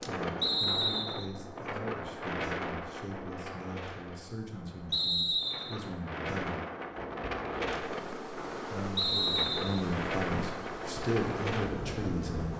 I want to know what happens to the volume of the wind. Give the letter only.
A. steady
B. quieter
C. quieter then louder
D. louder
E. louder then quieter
C.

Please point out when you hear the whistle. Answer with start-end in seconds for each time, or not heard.
0.4-1.2, 4.9-5.8, 8.9-9.8.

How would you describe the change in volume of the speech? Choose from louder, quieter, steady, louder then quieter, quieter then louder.
louder.